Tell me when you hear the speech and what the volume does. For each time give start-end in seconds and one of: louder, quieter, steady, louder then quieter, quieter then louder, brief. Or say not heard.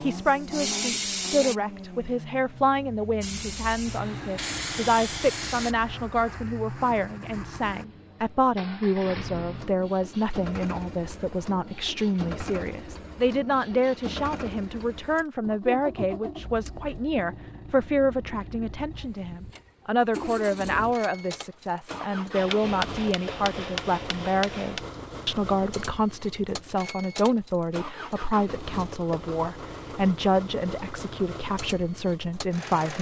0.0-32.9 steady.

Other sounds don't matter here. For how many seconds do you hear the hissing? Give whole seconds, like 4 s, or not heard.
4 s.